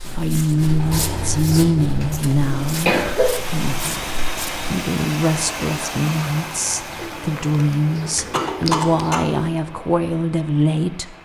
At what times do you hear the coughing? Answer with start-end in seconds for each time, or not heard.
2.1-3.3, 8.3-9.2.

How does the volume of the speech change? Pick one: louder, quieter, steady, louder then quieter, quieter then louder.
quieter then louder.